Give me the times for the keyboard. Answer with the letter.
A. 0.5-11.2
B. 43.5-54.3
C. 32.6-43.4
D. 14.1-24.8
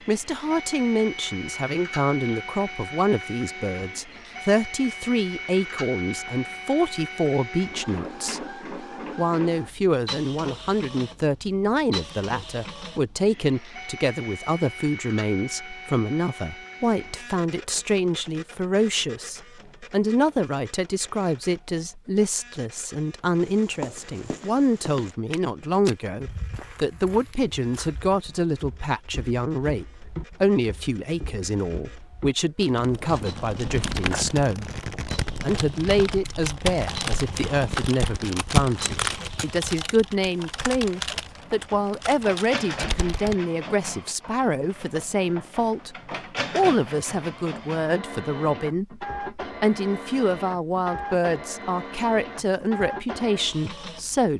C.